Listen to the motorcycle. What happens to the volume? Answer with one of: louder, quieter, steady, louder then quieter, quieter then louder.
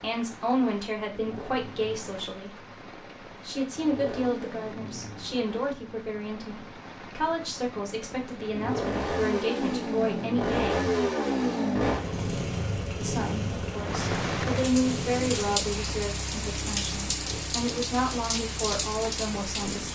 louder then quieter.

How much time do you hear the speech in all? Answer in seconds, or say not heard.
17 s.